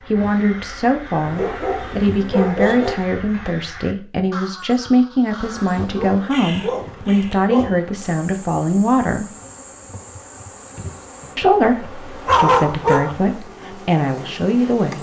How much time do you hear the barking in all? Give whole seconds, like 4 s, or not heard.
6 s.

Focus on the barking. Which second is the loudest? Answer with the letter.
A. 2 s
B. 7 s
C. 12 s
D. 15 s
C.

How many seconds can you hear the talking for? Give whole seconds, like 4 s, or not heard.
13 s.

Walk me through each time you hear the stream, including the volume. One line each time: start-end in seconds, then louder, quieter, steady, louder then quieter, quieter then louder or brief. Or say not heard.
not heard.